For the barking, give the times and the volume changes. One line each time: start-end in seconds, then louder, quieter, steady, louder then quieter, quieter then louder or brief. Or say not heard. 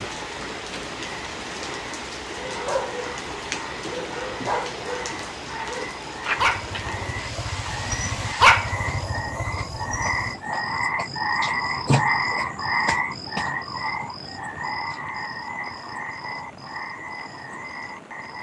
2.4-10.7 louder then quieter.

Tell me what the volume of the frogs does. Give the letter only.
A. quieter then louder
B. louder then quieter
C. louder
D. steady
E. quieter
B.